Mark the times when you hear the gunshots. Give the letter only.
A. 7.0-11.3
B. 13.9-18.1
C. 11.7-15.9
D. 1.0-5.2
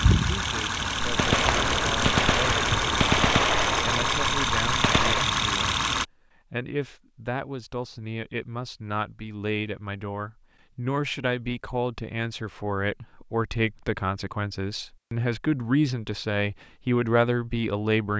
D.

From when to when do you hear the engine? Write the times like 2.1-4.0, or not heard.
0.0-6.0.